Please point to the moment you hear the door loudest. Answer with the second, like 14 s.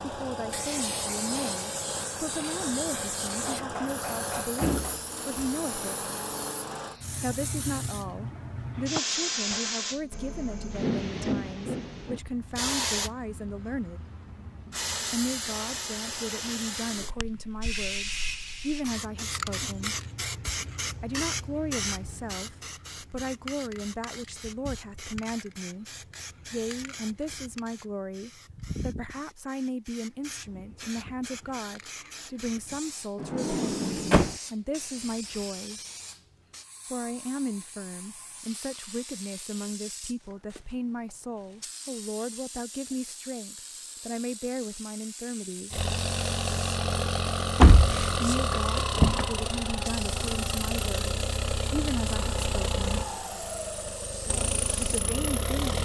48 s.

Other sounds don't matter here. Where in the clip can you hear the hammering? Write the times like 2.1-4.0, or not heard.
3.5-5.0.